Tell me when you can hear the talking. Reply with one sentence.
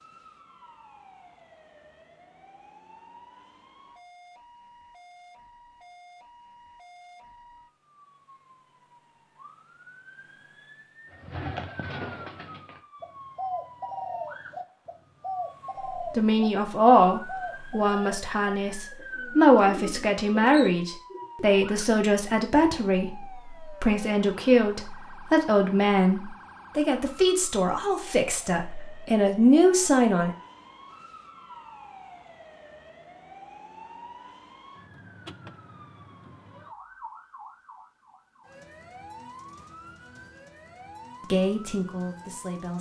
You can hear the talking from 16.1 to 30.3 s and from 41.3 to 42.7 s.